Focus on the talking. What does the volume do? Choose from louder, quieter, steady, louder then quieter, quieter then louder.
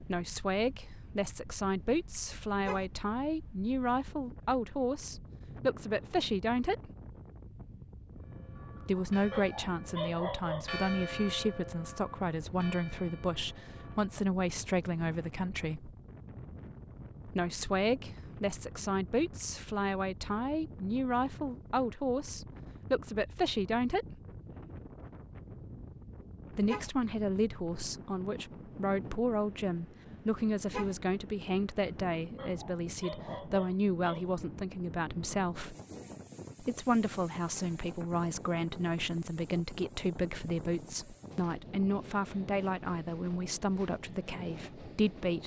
steady.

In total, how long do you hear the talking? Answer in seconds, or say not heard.
39 s.